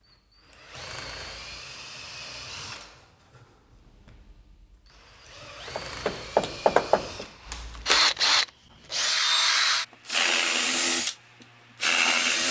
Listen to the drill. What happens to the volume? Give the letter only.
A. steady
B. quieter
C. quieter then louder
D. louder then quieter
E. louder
C.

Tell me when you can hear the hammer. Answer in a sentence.
You can hear the hammer from 5.7 to 7.2 s.